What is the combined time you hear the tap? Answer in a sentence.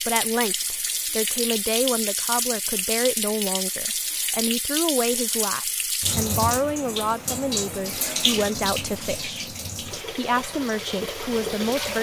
You can hear the tap for 12 seconds altogether.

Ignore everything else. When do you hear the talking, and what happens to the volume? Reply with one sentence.
You can hear the talking from 0.0 to 11.9 s, at a steady volume.